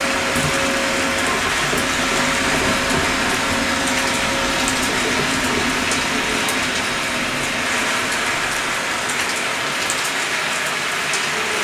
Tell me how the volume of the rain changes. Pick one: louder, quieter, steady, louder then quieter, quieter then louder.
steady.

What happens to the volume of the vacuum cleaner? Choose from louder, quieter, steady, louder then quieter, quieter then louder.
quieter.